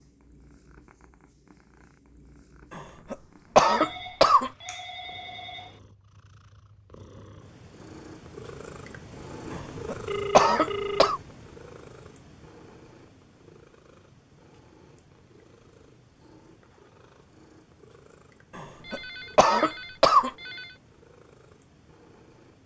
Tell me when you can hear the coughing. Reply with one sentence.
The coughing can be heard from 2.7 to 4.5 s, from 9.5 to 11.2 s and from 18.6 to 20.3 s.